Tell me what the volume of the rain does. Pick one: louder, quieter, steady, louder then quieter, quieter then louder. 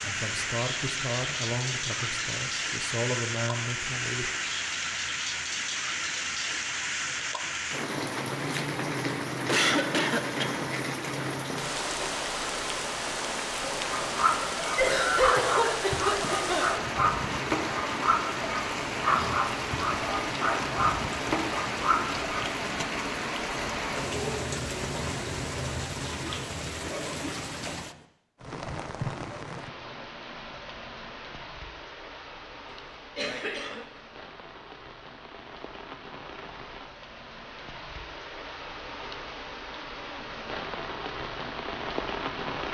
quieter.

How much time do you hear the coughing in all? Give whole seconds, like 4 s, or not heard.
4 s.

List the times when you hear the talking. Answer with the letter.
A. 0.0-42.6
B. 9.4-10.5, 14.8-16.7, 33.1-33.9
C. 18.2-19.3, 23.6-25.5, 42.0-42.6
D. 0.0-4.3
D.